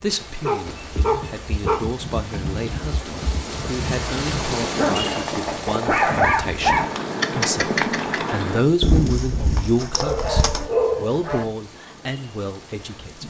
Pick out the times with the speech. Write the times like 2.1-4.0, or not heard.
0.0-13.2.